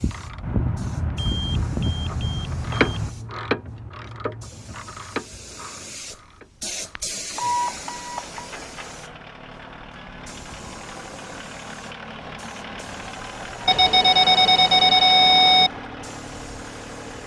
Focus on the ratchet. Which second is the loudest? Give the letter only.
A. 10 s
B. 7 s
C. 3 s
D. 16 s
C.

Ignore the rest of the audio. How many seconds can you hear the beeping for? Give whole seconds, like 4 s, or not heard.
6 s.